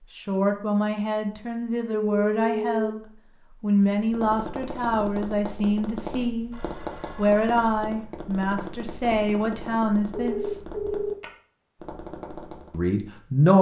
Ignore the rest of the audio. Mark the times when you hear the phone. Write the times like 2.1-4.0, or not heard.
1.9-3.0, 6.5-7.6, 10.1-11.2.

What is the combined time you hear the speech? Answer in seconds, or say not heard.
10 s.